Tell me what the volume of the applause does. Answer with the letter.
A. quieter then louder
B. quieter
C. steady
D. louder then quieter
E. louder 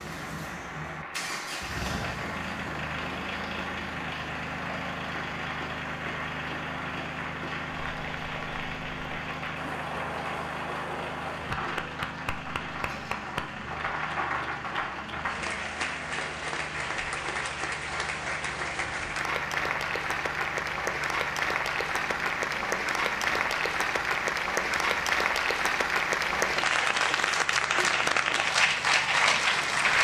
E.